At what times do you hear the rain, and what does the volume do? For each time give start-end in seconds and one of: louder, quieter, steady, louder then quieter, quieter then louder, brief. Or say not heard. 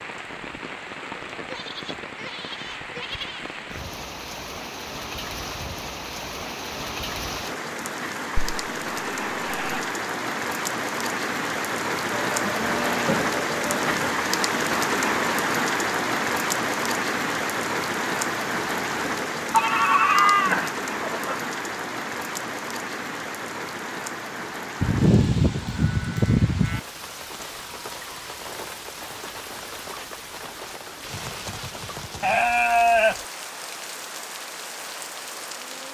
0.0-35.9 louder then quieter.